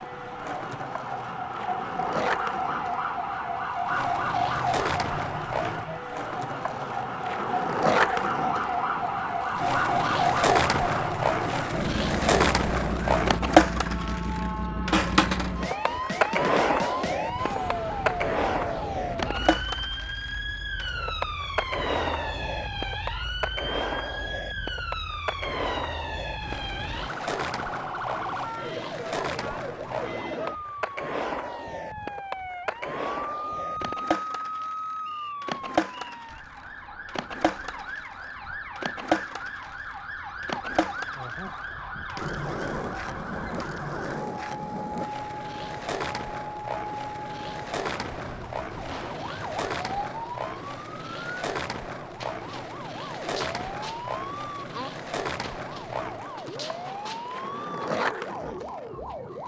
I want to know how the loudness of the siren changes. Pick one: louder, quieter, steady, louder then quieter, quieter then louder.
quieter.